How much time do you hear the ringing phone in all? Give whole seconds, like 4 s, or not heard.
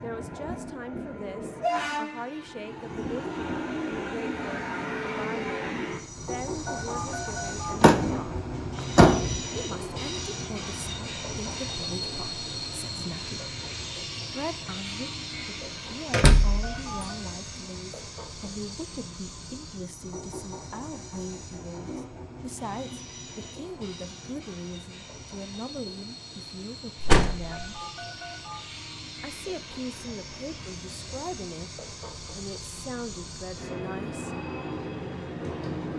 3 s.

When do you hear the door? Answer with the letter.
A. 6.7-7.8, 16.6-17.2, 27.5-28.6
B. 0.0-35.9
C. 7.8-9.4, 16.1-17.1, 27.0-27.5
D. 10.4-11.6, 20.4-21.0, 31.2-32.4
C.